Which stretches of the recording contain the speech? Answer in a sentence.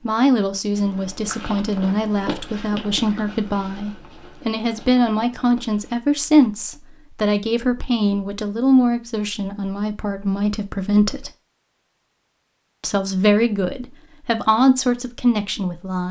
You can hear the speech from 0.0 to 11.3 s and from 12.8 to 16.0 s.